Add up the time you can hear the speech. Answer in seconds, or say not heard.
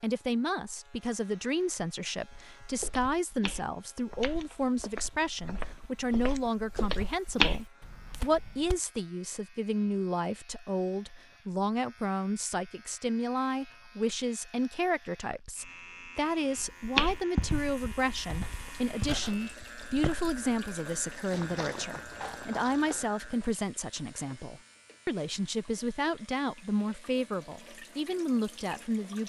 29 s.